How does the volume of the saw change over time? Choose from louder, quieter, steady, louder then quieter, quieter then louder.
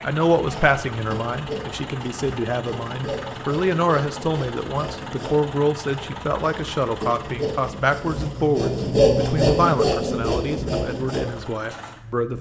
louder.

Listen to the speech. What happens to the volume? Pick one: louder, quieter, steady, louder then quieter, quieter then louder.
steady.